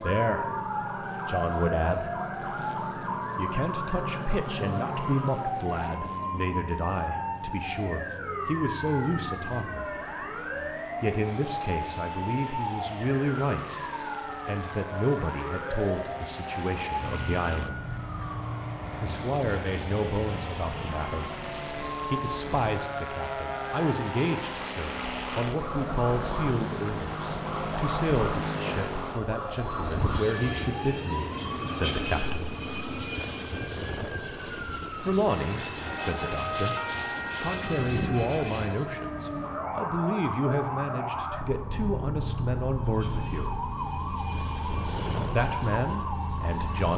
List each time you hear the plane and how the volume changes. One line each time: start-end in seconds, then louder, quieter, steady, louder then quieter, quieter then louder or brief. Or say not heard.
0.0-39.0 louder
42.5-46.9 louder then quieter.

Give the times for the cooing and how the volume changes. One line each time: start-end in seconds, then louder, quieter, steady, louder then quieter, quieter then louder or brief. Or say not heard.
not heard.